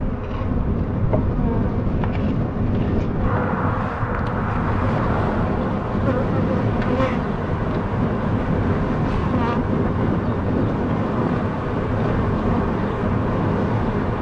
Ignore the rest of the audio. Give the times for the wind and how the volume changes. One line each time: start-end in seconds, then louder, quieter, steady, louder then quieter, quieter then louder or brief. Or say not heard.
0.0-14.1 steady.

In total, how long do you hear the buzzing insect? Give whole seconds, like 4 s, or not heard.
14 s.